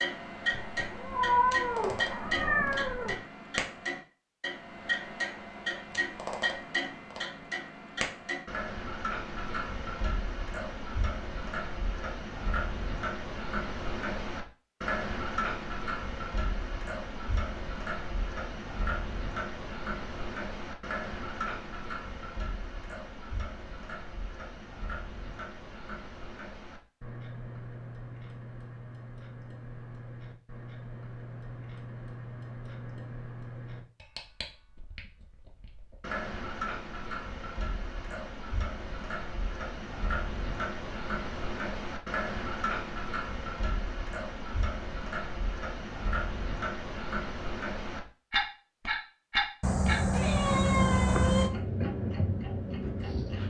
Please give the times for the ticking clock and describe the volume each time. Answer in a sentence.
You can hear the ticking clock from 0.0 to 53.4 s, getting quieter then louder.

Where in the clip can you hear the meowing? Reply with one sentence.
The meowing can be heard from 0.5 to 3.1 s and from 49.6 to 51.5 s.